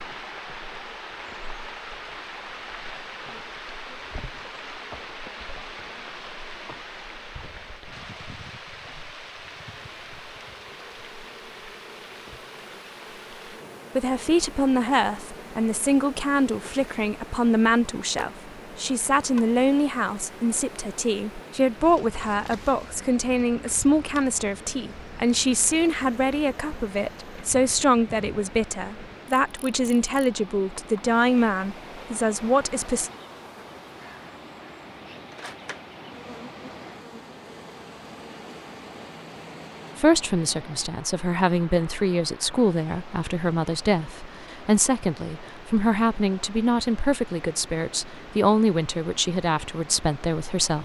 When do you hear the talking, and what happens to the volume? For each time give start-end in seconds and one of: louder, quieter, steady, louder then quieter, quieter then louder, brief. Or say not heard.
13.9-33.1 steady
40.0-50.7 steady.